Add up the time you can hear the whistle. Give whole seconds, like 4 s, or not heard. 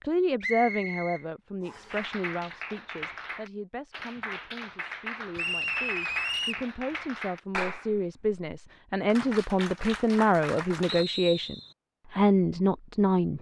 4 s.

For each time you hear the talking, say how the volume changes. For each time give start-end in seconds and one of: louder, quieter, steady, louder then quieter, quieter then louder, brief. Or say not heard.
0.0-13.3 quieter then louder.